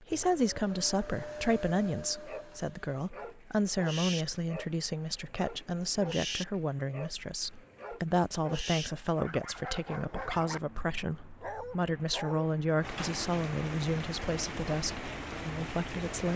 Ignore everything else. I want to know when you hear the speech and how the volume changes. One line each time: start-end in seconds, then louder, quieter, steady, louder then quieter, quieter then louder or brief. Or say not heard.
0.0-16.3 steady.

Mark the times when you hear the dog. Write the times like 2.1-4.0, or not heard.
2.2-10.6, 11.4-12.5.